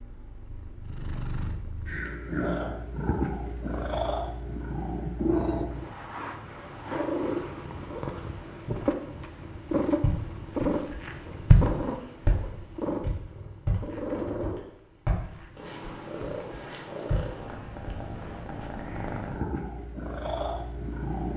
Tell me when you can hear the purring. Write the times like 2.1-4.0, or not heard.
0.0-21.3.